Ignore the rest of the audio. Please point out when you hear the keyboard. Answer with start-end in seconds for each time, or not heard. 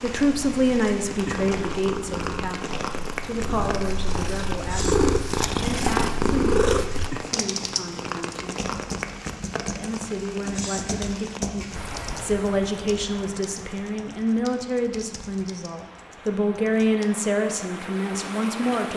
7.2-17.2.